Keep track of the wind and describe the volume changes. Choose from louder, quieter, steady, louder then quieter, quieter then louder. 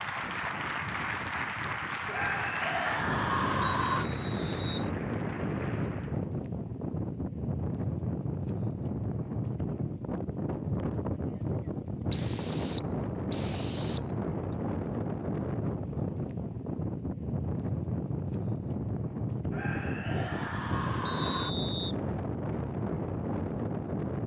steady.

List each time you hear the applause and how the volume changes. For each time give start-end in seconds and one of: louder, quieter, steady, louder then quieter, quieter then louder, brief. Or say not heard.
0.0-6.3 quieter.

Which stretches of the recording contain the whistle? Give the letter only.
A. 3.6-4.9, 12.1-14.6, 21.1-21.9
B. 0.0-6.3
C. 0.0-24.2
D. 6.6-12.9
A.